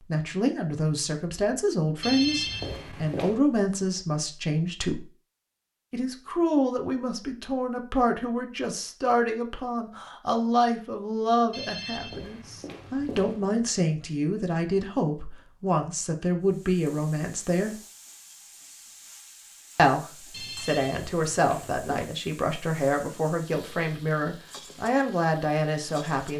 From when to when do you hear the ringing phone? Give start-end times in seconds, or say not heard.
2.0-3.4, 11.5-13.4, 20.3-22.1.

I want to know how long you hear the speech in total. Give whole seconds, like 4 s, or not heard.
23 s.